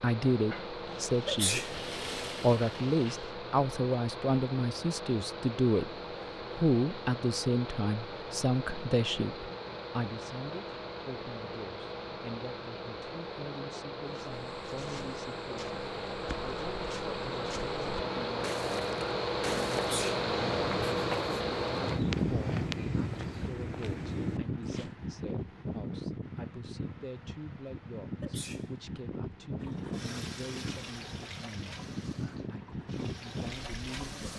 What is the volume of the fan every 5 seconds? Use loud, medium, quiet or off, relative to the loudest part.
medium, medium, medium, loud, loud, medium, medium.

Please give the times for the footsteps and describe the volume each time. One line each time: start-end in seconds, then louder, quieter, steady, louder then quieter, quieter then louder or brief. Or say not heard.
14.1-24.9 louder.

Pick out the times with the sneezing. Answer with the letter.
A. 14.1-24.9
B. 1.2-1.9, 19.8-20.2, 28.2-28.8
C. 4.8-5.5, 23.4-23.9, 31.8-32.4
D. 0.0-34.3
B.